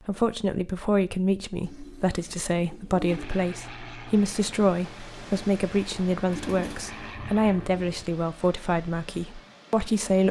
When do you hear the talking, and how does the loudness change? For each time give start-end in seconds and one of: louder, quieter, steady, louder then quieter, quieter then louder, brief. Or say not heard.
0.1-10.2 steady.